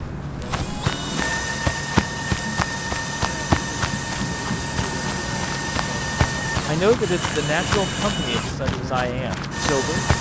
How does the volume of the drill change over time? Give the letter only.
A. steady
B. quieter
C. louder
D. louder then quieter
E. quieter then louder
A.